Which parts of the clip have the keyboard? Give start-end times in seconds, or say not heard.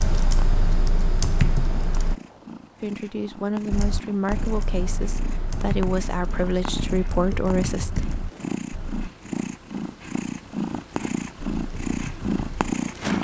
0.0-2.1, 3.7-9.1, 11.6-13.1.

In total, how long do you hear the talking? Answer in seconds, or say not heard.
5 s.